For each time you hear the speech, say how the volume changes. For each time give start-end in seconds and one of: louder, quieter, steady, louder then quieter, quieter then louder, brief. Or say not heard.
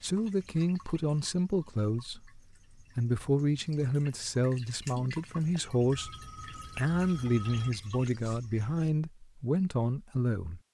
0.0-10.6 steady.